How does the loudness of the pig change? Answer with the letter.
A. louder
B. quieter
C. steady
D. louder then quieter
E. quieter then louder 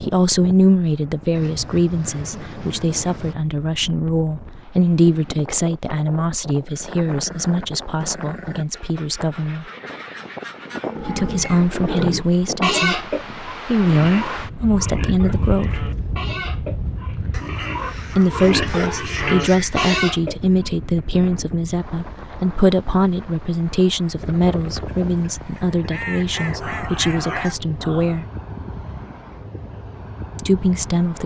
E.